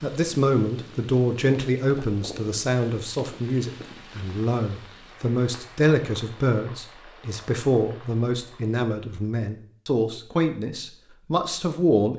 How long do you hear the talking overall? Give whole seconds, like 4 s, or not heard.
12 s.